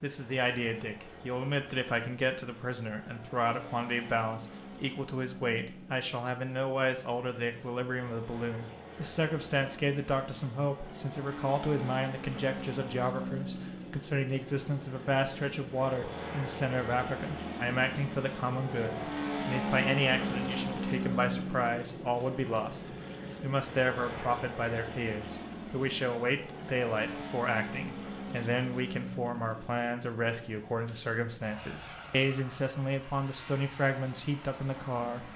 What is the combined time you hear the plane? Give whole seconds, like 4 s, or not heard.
35 s.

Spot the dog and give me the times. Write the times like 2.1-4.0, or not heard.
not heard.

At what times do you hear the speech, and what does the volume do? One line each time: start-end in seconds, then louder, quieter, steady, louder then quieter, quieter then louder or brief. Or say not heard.
0.0-22.8 steady
23.4-35.3 steady.